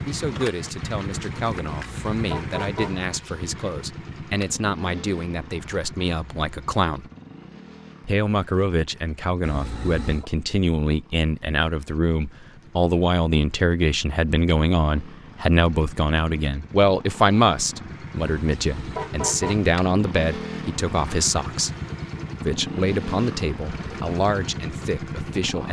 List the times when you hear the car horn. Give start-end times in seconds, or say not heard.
1.7-3.0, 9.4-10.3, 18.2-19.6.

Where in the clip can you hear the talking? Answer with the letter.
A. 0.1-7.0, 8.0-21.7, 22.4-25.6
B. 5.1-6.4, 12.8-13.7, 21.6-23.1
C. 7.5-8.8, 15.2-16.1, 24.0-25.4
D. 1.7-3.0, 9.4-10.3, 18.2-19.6
A.